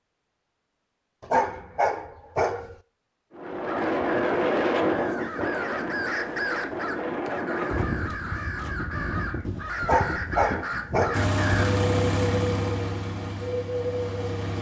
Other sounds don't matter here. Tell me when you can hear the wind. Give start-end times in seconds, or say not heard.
3.4-14.5.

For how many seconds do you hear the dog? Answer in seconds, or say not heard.
3 s.